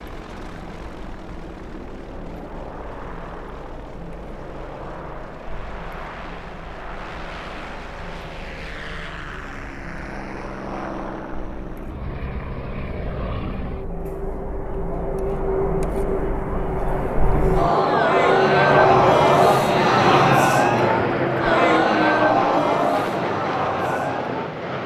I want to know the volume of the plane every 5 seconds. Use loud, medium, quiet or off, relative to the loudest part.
quiet, quiet, medium, loud, loud.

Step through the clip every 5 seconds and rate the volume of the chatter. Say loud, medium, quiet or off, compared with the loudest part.
quiet, quiet, quiet, loud, loud.